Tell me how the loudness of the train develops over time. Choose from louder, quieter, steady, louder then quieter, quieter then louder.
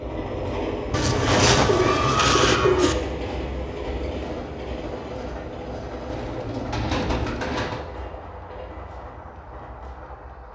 quieter.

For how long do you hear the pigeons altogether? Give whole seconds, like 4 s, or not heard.
4 s.